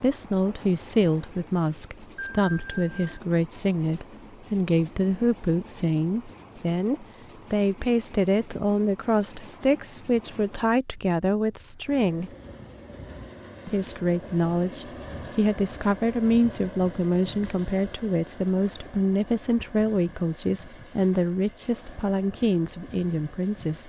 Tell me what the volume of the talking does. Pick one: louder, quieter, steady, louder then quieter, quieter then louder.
steady.